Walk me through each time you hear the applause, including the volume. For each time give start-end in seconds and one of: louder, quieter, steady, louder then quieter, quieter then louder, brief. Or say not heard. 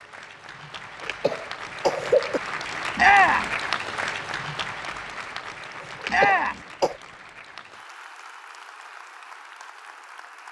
0.0-10.4 louder then quieter.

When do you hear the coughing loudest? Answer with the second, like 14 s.
2 s.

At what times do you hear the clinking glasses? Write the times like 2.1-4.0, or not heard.
not heard.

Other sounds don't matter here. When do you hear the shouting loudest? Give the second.
3 s.